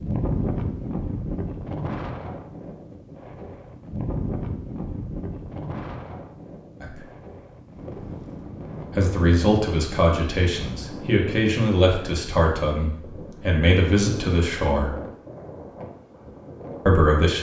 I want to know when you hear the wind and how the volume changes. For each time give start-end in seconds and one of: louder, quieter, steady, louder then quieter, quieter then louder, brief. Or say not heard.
0.0-17.1 quieter.